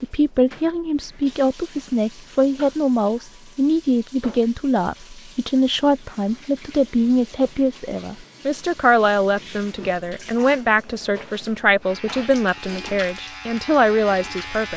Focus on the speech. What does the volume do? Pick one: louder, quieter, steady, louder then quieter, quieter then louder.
steady.